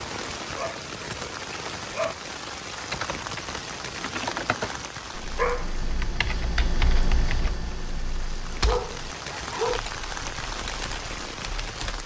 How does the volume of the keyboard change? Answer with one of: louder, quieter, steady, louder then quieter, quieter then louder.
quieter.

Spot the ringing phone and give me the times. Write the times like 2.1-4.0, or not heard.
not heard.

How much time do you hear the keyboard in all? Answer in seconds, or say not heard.
9 s.